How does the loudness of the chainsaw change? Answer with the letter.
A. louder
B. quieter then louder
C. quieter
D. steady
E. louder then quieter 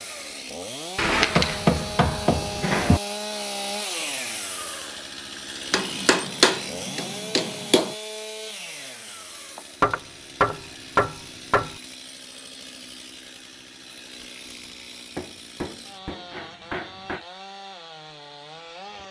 C.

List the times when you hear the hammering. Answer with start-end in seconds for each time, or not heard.
0.9-3.0, 5.7-7.9, 9.8-11.8, 15.2-17.2.